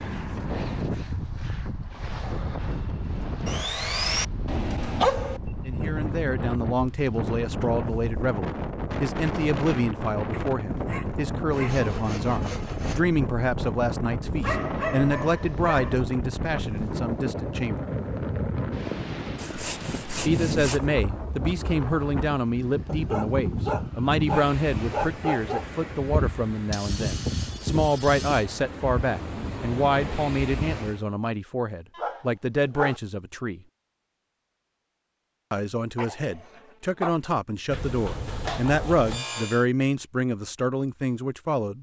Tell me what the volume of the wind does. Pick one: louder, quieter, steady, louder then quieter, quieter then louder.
steady.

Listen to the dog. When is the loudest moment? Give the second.
5 s.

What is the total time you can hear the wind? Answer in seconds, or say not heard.
31 s.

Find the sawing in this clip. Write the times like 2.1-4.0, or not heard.
3.5-4.2, 11.5-13.1, 19.4-20.9, 26.7-28.4, 37.7-39.6.